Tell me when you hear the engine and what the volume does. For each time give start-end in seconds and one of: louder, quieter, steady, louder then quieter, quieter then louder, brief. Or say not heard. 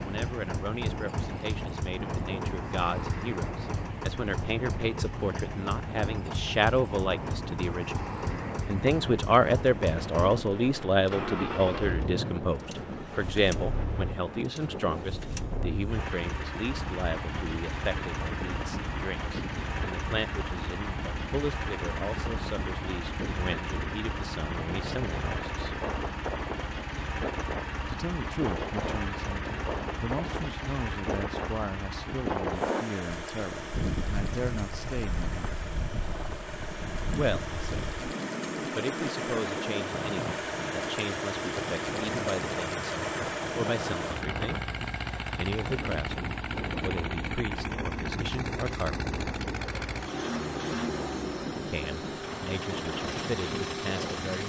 0.0-54.4 steady.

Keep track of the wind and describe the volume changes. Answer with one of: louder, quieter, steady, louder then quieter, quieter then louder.
steady.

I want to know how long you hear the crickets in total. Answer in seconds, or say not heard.
not heard.